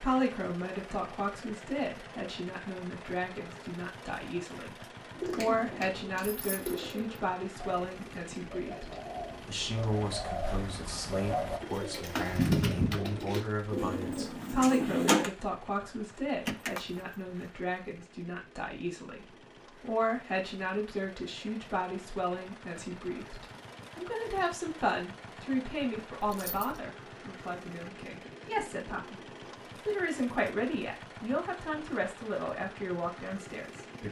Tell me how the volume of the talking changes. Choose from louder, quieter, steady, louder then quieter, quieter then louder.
steady.